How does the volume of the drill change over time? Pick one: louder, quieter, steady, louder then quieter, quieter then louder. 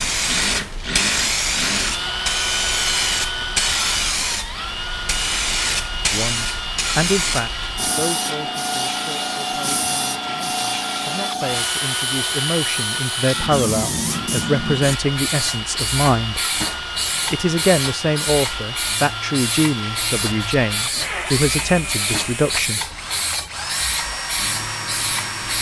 steady.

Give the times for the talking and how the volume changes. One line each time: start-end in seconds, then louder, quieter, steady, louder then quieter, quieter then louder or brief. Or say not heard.
6.1-16.4 quieter then louder
17.3-22.8 steady.